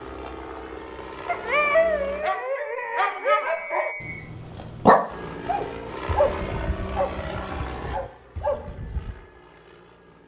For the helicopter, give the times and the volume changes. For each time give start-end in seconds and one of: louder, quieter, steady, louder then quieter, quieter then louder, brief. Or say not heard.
0.0-2.2 brief
5.1-10.2 quieter.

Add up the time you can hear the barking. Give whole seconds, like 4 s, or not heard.
8 s.